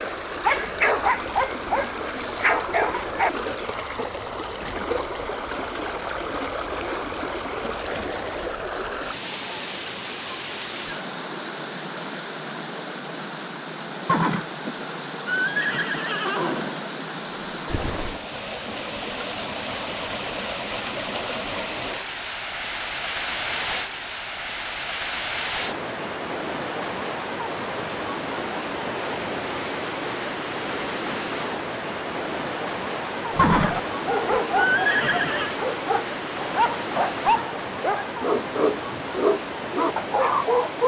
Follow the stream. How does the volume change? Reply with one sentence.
The volume of the stream stays about the same.